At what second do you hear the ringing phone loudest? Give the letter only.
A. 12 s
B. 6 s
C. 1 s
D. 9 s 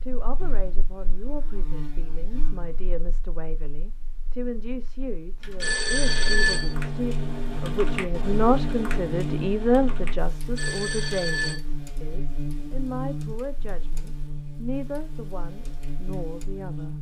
B.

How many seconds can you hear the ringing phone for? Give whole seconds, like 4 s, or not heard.
2 s.